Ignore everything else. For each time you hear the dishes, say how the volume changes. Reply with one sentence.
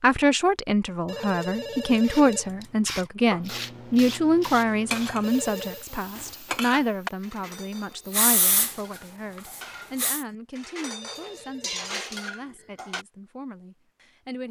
The dishes can be heard from 4.7 to 13.1 s, getting quieter then louder.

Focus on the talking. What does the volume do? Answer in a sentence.
The volume of the talking goes down.